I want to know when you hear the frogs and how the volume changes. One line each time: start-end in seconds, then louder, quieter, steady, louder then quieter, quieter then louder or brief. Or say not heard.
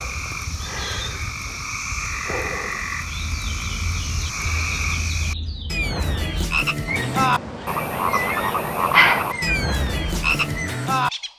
0.0-11.1 louder.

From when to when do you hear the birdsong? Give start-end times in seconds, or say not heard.
3.0-11.3.